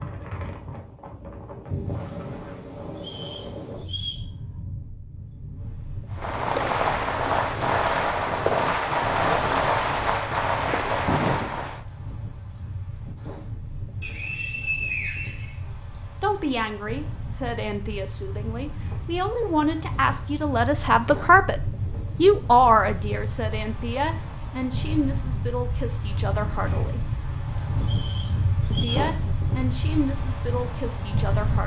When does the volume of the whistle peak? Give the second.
15 s.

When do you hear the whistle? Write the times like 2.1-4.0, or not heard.
3.0-4.2, 14.0-16.0, 27.8-29.1.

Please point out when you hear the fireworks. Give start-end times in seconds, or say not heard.
6.1-11.8.